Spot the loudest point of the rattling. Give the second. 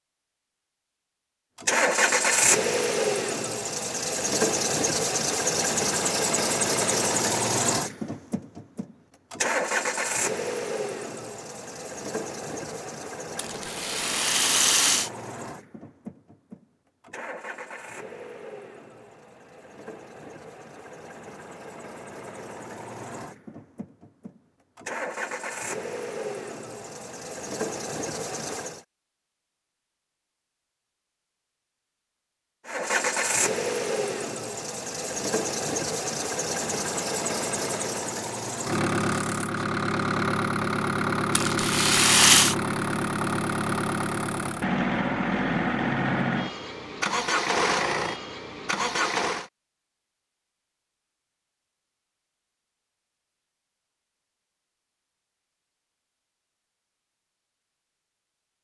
42 s.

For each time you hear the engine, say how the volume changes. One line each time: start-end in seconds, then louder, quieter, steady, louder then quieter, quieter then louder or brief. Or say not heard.
1.6-28.9 quieter then louder
32.6-49.5 steady.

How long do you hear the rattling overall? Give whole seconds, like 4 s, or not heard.
3 s.